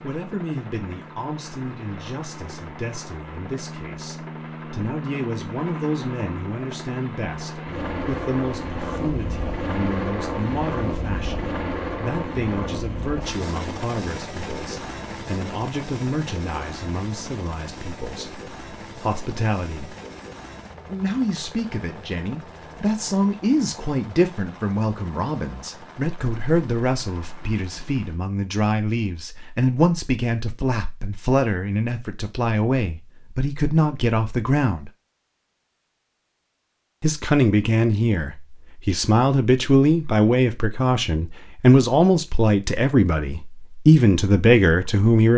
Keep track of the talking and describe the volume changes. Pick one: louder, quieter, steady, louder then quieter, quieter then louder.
louder.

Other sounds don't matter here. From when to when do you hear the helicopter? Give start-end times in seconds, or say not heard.
0.0-28.2.